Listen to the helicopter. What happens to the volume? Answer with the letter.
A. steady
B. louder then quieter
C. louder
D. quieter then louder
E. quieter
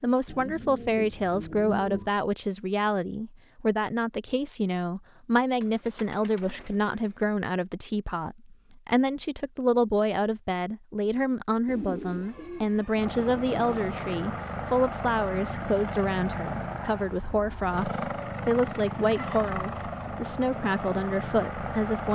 A.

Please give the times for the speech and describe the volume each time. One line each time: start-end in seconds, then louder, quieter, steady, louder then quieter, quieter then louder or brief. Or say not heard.
0.0-22.1 steady.